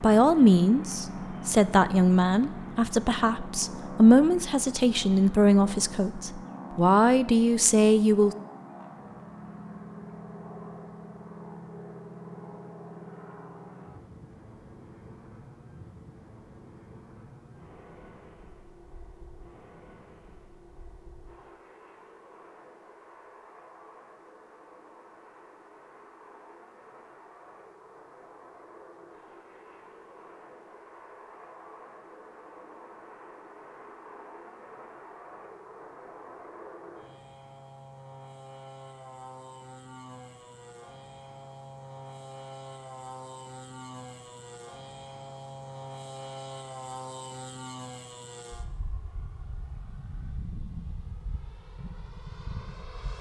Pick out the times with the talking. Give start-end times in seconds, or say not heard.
0.0-8.3.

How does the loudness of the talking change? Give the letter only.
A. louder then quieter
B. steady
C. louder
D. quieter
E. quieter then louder
B.